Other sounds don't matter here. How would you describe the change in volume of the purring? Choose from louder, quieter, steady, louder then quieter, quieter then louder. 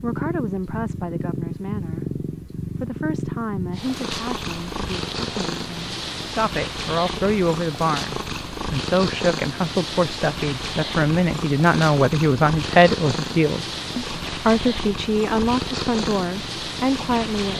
steady.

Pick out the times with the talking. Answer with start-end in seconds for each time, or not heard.
0.0-17.5.